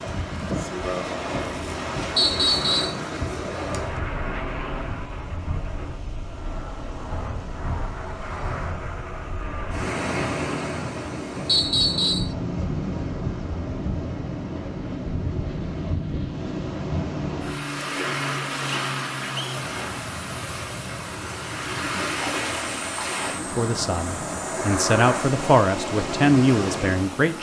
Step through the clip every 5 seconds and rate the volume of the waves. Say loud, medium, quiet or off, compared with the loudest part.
loud, medium, loud, loud, loud, loud.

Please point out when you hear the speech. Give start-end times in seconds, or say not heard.
23.4-27.3.